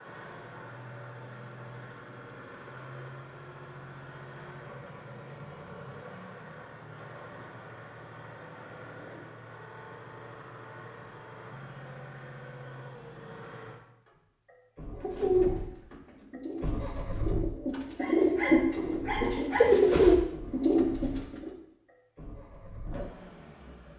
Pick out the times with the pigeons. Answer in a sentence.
The pigeons can be heard from 15.0 to 21.5 s.